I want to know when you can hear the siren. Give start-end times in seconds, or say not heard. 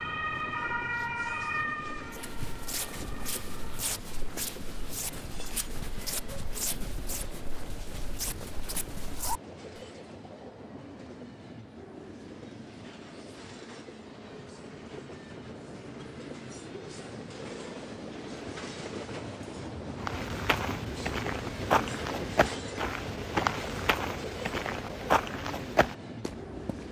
0.0-3.9.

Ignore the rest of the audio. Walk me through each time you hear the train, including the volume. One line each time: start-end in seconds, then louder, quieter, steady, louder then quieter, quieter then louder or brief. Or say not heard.
0.0-26.8 louder.